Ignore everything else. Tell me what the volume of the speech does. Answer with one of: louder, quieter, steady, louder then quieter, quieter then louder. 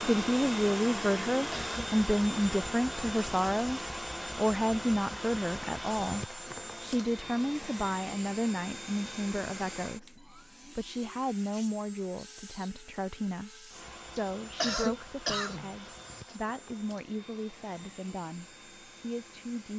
quieter.